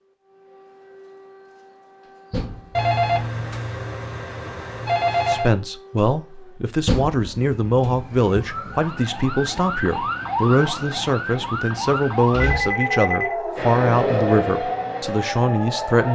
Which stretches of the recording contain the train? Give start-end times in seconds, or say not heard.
13.6-16.1.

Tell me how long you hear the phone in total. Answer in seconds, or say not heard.
4 s.